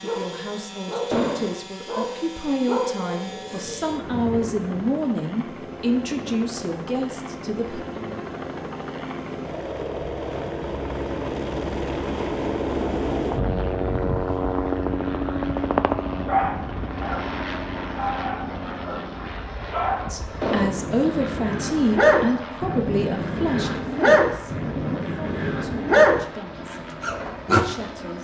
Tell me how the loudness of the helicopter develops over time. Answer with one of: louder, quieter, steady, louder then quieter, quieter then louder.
louder then quieter.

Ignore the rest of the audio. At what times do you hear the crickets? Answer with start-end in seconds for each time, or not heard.
not heard.